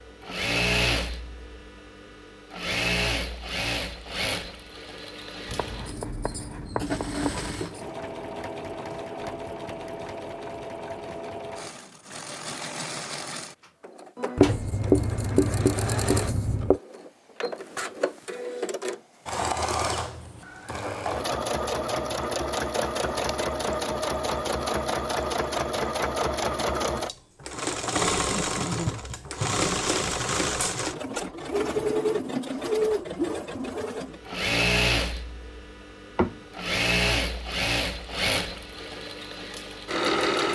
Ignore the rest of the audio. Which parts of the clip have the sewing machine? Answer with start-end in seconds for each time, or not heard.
0.0-40.5.